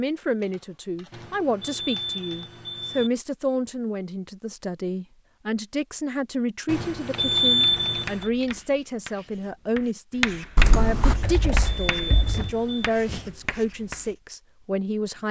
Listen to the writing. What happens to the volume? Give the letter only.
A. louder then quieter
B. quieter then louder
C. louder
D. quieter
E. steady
A.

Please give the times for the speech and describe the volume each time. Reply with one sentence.
You can hear the speech from 0.0 to 15.2 s, at a steady volume.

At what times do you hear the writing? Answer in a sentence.
You can hear the writing from 7.8 to 14.2 s.